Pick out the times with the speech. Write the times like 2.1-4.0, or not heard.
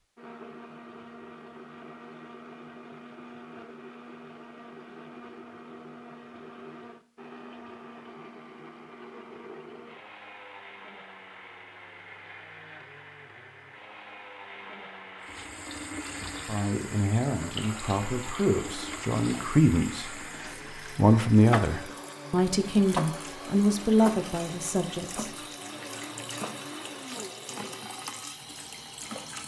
16.4-25.4.